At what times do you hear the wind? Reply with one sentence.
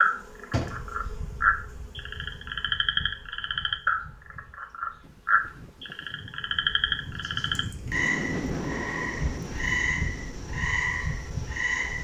You can hear the wind from 5.0 to 11.9 s.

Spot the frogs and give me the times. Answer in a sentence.
The frogs can be heard from 0.0 to 11.9 s.